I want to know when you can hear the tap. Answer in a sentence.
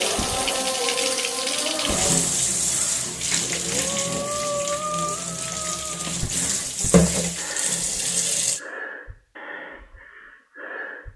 The tap can be heard from 0.0 to 8.6 s.